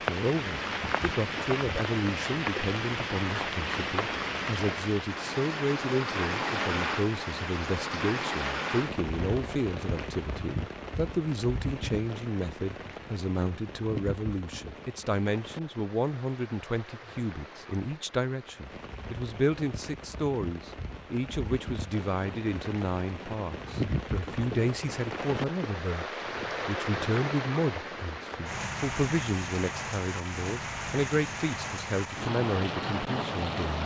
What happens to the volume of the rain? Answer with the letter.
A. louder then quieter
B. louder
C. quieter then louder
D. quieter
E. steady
C.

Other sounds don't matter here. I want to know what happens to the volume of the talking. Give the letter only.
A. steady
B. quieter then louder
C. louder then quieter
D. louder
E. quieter
A.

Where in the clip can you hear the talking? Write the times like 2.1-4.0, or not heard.
0.1-33.8.